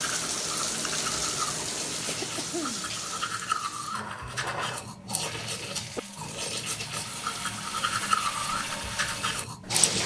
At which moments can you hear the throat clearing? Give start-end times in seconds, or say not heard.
2.0-3.0.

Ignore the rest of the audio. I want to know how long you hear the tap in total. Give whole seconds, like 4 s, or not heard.
10 s.